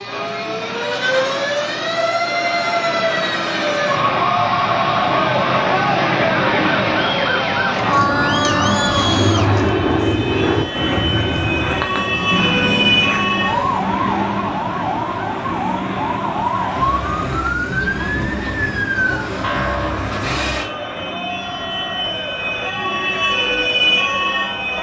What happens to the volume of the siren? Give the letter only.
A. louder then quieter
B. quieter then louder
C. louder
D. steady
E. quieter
D.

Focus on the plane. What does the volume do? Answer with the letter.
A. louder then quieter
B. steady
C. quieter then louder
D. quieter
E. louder
A.